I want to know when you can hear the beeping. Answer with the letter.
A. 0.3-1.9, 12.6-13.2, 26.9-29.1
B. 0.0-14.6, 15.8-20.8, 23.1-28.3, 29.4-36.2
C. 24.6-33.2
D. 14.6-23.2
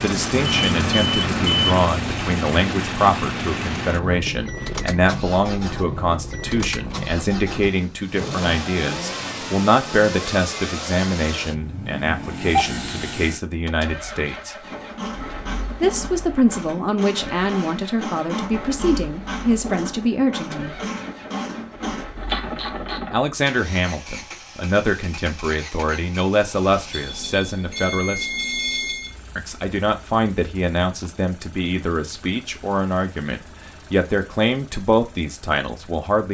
A.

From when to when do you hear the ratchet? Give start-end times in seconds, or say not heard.
14.6-23.2.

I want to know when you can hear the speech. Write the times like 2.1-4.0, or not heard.
0.0-14.6, 15.8-20.8, 23.1-28.3, 29.4-36.2.